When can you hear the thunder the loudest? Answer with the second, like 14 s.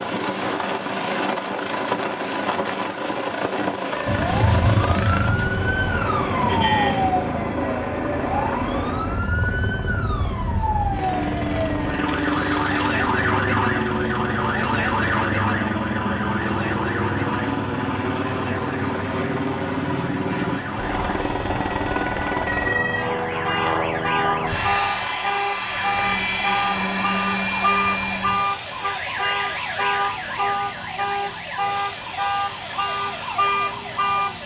5 s.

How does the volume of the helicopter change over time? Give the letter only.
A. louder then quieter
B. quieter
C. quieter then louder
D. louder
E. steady
E.